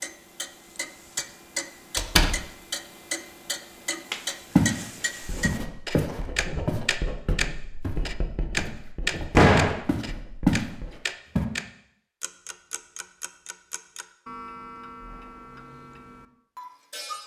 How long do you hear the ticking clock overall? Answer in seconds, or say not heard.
17 s.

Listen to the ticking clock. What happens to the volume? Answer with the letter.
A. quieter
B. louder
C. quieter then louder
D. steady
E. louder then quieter
E.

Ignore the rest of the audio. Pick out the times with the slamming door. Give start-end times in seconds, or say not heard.
1.9-2.4, 9.3-9.8.